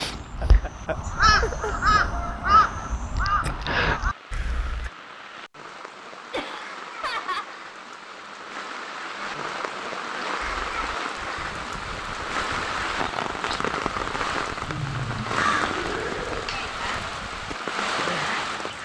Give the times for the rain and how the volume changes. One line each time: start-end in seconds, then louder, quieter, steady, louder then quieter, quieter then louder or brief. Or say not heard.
0.0-18.8 louder.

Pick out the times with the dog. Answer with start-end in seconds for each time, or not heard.
not heard.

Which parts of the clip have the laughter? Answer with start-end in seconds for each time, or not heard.
0.4-1.8, 6.3-7.5, 14.7-16.6.